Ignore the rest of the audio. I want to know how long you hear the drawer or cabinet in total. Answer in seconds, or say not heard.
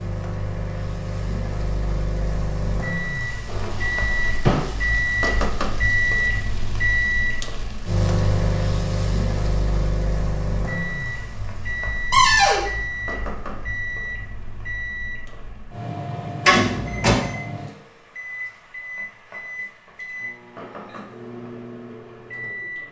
3 s.